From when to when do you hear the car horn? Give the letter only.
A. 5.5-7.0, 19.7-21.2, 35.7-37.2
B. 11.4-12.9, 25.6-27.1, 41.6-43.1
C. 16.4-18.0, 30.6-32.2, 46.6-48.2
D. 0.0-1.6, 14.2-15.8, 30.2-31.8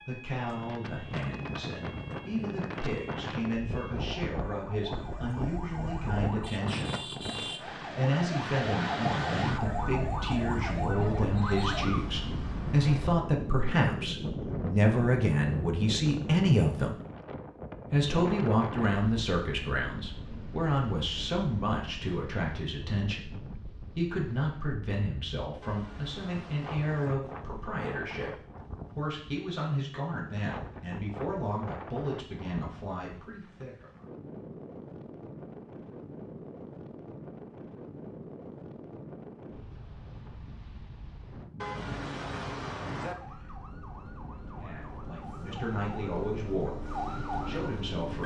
B.